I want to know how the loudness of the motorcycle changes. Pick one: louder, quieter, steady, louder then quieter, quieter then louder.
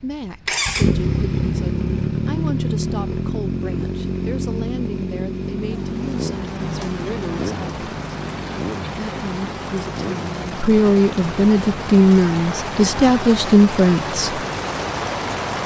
quieter.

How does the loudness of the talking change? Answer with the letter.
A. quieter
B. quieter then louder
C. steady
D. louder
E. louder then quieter
D.